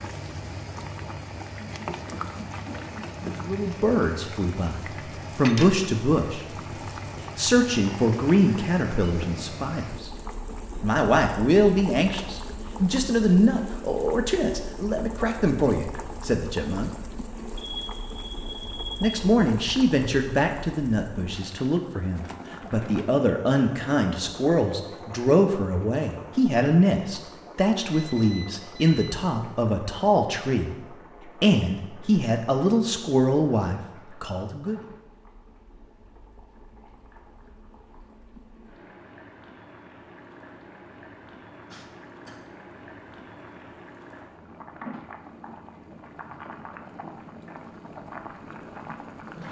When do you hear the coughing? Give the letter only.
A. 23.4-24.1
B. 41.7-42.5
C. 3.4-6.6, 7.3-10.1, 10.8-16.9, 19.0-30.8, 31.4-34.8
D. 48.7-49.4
B.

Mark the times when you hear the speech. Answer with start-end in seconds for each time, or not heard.
3.4-6.6, 7.3-10.1, 10.8-16.9, 19.0-30.8, 31.4-34.8.